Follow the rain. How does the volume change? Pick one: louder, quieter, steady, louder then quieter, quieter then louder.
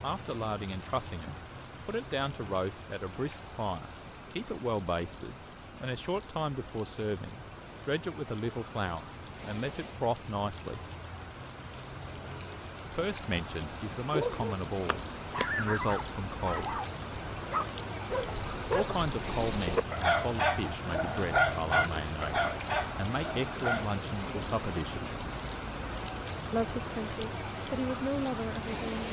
louder.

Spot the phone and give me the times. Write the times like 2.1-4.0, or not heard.
14.8-15.4.